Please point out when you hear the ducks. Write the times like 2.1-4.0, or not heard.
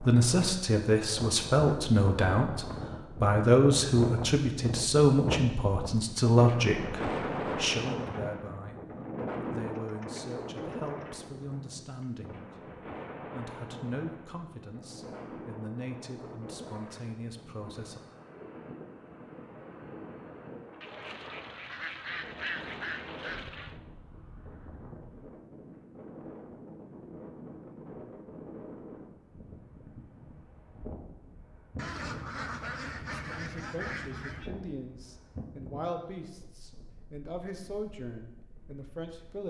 9.7-11.1, 20.8-23.8, 31.8-34.5.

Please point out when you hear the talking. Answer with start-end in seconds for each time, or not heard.
0.0-18.0, 33.2-39.4.